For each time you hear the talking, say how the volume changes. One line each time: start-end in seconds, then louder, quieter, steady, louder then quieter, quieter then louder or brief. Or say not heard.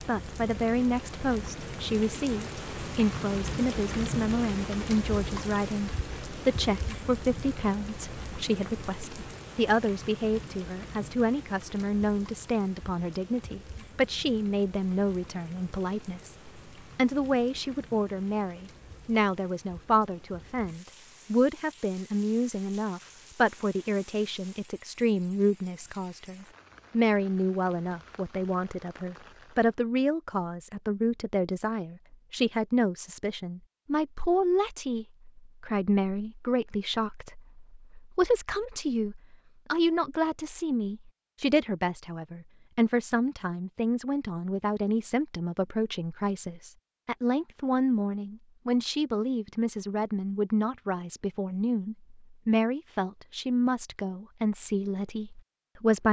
0.1-56.0 steady.